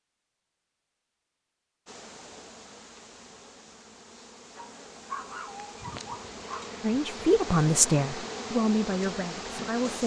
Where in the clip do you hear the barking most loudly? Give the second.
5 s.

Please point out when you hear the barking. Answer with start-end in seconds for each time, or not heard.
4.5-6.7.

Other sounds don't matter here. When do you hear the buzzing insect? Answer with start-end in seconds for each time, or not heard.
1.9-10.0.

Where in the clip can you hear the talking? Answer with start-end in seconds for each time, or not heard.
6.8-10.0.